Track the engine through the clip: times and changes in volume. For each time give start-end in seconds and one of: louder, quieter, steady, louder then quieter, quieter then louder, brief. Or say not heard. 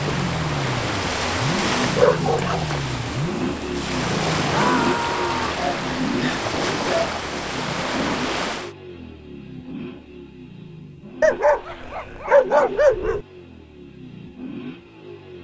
0.0-15.3 quieter.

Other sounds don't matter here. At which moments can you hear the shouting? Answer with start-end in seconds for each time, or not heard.
4.5-5.6.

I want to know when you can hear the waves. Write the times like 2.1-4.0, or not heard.
0.0-8.8.